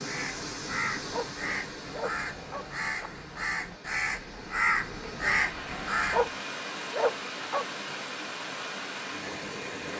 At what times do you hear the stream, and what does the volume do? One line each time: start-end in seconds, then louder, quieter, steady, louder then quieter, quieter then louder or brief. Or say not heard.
0.0-9.9 quieter then louder.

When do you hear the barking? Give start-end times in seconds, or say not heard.
1.1-3.1, 6.1-7.7.